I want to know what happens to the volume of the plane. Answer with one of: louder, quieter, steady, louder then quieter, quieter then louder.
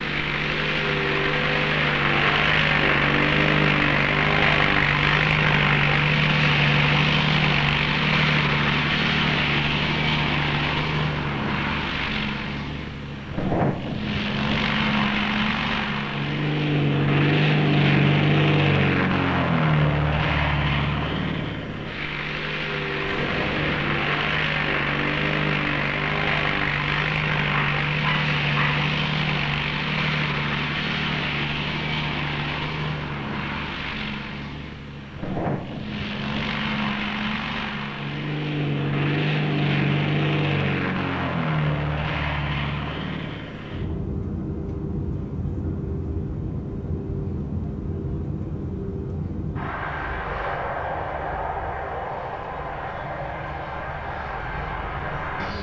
quieter.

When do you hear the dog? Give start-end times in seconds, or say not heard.
27.4-28.8.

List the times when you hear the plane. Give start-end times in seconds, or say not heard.
0.0-55.5.